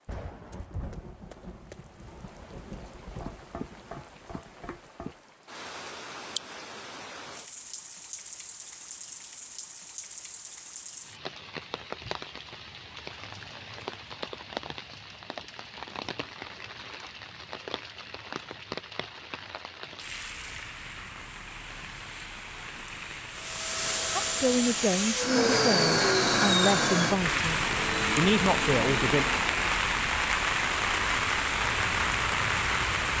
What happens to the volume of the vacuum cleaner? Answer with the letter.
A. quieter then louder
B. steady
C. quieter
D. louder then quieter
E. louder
D.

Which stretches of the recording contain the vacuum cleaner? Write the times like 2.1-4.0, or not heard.
23.3-29.8.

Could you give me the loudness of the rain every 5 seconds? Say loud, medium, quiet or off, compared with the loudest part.
quiet, quiet, quiet, quiet, quiet, loud, loud.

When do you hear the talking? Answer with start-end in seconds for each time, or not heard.
24.1-29.2.